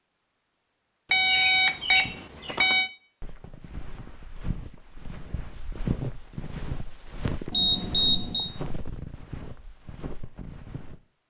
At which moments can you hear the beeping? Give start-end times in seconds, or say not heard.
1.1-2.9, 7.5-8.5.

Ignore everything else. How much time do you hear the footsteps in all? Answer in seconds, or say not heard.
9 s.